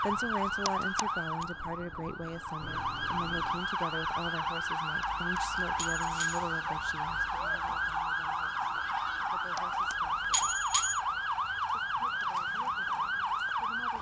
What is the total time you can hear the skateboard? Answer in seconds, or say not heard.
not heard.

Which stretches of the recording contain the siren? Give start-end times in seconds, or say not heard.
0.0-13.9.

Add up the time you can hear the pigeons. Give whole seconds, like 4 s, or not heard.
not heard.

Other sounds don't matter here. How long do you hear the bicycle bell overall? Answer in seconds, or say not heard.
4 s.